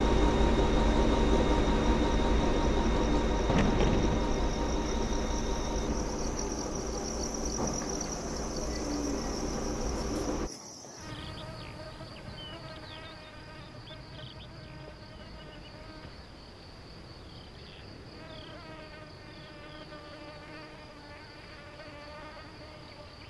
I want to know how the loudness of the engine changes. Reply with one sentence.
The loudness of the engine goes down.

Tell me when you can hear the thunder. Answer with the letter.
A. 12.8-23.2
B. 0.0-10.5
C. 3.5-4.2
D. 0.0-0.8
C.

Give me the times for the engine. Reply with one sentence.
You can hear the engine from 0.0 to 10.5 s.